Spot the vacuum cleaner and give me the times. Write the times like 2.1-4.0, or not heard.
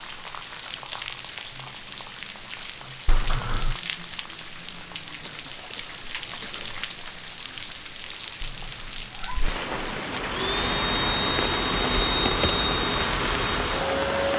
10.1-14.3.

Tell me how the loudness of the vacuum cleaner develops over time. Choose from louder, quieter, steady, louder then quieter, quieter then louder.
steady.